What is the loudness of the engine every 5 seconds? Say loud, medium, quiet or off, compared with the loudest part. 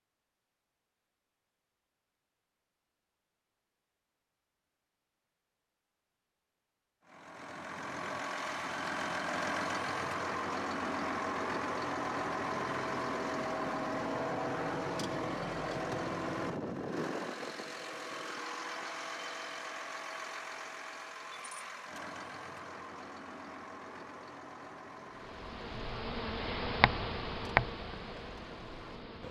off, loud, loud, loud, medium, quiet.